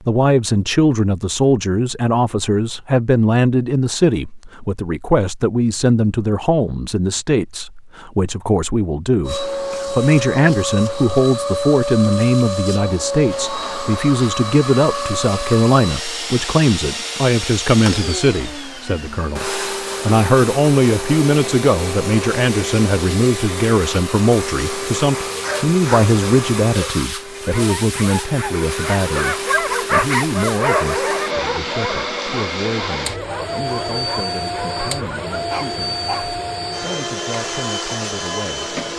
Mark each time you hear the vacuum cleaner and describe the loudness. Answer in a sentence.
The vacuum cleaner can be heard from 9.2 to 38.9 s, at a steady volume.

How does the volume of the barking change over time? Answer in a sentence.
The volume of the barking goes up, then down.